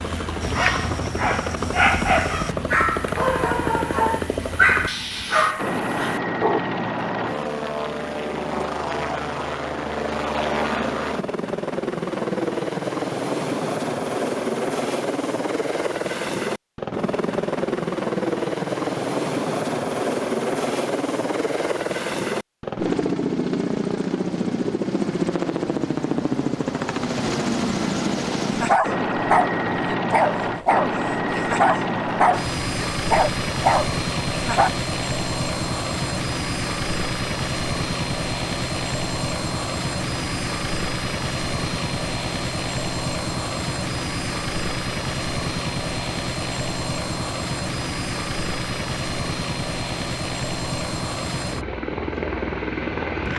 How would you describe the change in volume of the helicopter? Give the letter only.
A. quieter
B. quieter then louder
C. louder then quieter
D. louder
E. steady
E.